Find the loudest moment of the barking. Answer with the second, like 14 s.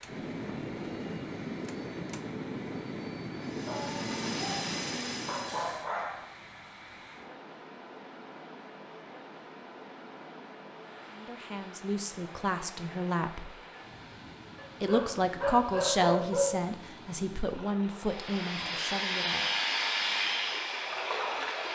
16 s.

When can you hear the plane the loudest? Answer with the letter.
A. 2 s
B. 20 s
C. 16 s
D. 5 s
B.